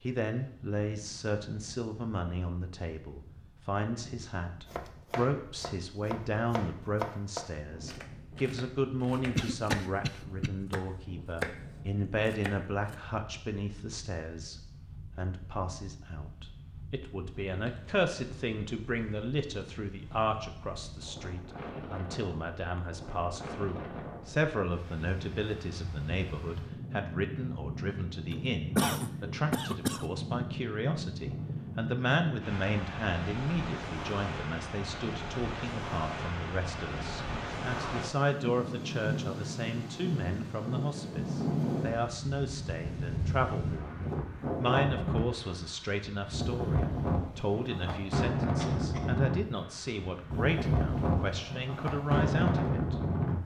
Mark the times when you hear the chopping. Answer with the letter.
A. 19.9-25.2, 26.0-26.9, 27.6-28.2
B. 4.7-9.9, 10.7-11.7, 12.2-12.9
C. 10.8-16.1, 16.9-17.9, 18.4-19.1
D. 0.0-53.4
B.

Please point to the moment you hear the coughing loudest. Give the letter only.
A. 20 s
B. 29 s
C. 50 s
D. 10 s
B.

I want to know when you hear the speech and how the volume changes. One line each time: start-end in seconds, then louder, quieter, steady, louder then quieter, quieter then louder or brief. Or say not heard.
0.0-53.4 steady.